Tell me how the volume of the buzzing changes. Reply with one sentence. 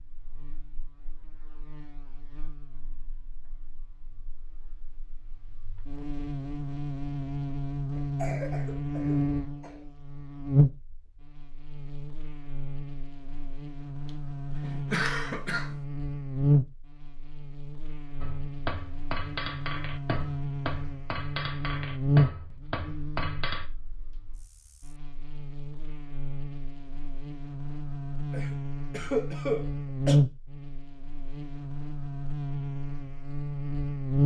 The volume of the buzzing goes up.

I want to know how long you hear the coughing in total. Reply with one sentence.
You can hear the coughing for 5 seconds altogether.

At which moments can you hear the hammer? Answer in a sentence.
You can hear the hammer from 18.2 to 23.6 s.